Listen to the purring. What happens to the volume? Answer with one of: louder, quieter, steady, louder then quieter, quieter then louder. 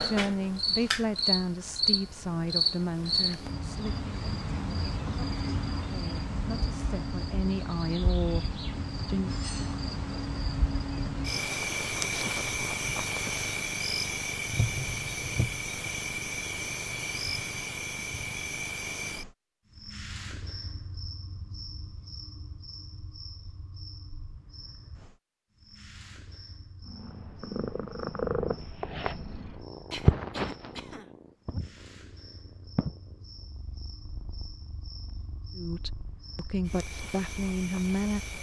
quieter.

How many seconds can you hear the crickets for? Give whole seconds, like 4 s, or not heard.
38 s.